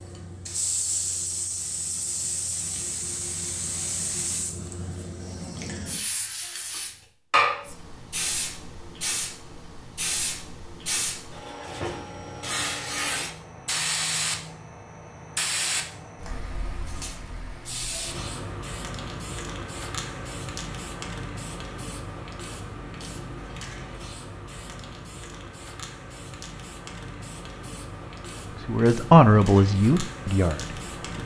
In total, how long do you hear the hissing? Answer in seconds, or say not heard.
31 s.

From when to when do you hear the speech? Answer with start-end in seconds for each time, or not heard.
28.6-31.2.